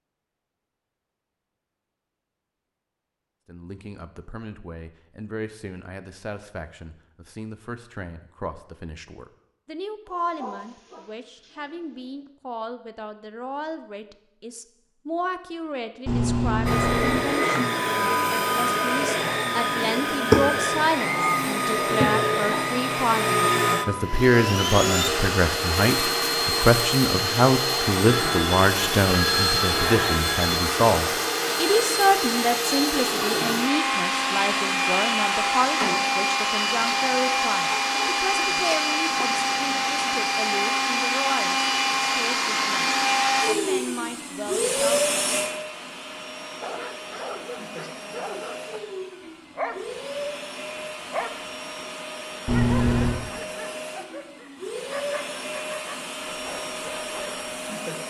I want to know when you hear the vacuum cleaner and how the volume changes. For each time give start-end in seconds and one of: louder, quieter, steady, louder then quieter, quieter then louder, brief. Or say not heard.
16.6-58.0 quieter.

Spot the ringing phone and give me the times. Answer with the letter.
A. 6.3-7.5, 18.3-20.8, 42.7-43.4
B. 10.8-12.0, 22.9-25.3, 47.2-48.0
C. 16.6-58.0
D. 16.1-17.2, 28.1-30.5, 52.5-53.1
D.